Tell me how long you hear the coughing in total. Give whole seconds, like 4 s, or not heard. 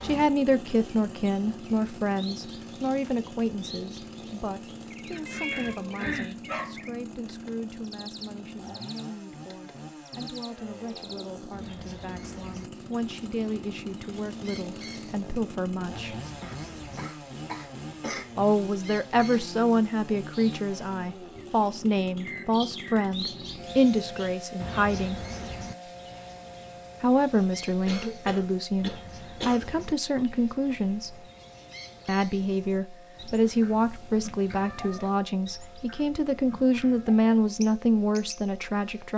5 s.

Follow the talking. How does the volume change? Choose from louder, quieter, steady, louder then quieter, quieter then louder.
quieter then louder.